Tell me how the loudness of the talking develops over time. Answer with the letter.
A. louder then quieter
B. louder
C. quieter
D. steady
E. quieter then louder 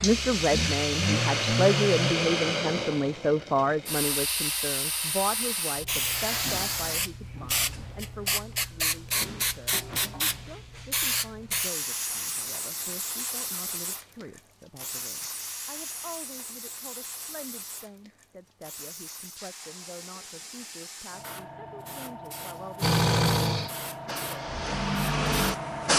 C.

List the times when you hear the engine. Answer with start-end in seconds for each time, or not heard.
0.0-2.1, 22.8-25.9.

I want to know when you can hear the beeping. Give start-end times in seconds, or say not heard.
not heard.